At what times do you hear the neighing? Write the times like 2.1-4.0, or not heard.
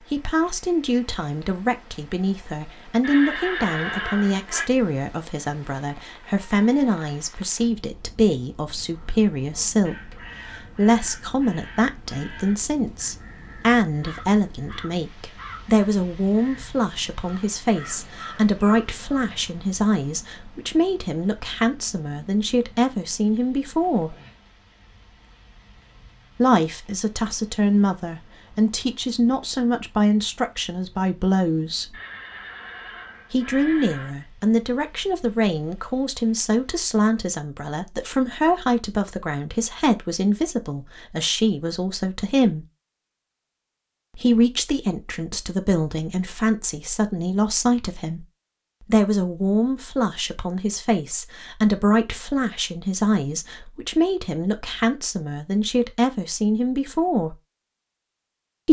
3.0-4.7, 31.9-34.1.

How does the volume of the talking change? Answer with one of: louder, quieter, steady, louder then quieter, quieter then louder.
steady.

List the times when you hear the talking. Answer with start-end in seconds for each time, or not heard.
0.1-24.1, 26.4-31.9, 33.3-42.6, 44.1-48.2, 48.9-57.4.